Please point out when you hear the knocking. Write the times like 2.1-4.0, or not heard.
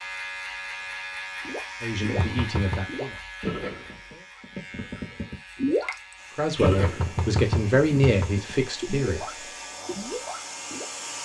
2.1-2.9, 6.7-8.3.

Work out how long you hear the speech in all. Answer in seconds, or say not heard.
5 s.